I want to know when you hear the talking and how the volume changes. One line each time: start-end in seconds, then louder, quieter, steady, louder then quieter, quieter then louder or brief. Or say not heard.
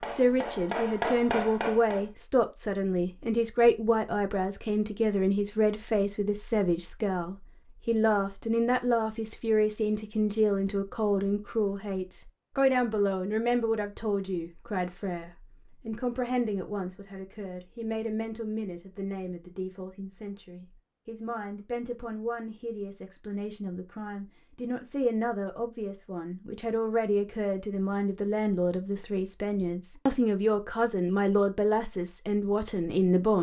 0.1-33.3 quieter then louder.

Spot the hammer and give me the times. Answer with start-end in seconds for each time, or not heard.
0.0-2.0.